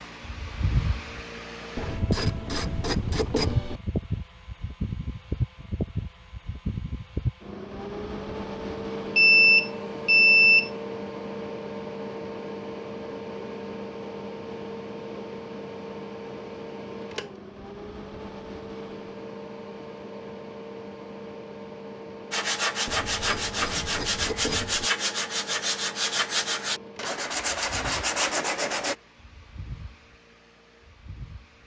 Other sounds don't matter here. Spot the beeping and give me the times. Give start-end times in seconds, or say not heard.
9.2-10.7.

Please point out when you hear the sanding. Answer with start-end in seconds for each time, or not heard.
22.3-28.9.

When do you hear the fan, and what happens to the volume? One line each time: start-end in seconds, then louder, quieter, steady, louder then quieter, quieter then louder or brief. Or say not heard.
0.0-31.6 quieter.